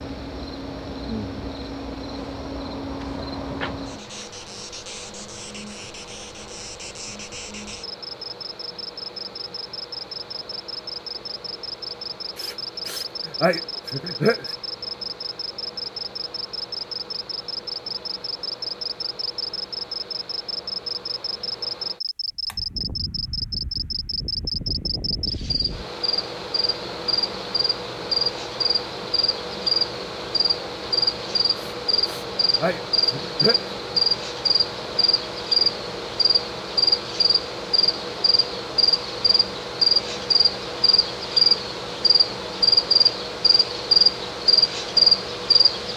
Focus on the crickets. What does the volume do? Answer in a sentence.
The volume of the crickets goes up.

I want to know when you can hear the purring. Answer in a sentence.
The purring can't be heard in this clip.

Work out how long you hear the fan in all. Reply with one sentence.
You can hear the fan for 46 seconds altogether.